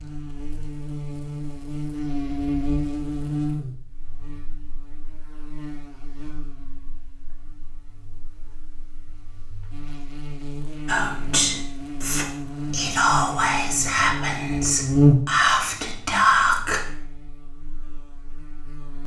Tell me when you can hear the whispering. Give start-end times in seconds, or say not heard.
10.8-16.9.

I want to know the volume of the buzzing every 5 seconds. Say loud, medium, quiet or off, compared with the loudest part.
medium, quiet, medium, loud.